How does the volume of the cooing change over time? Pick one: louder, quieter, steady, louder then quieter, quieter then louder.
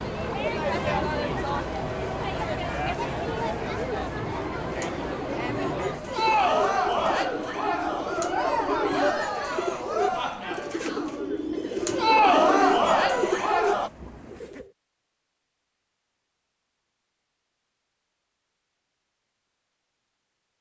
louder.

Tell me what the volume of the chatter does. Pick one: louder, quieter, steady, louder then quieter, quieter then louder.
louder.